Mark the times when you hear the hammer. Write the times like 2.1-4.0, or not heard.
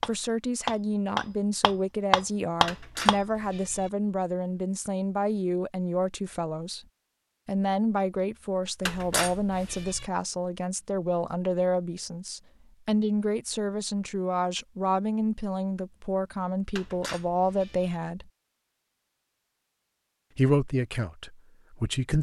0.0-3.1.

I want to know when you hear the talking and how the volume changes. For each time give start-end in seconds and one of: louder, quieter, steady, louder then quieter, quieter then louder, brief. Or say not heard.
0.1-6.8 steady
7.5-18.3 steady
20.4-22.1 brief.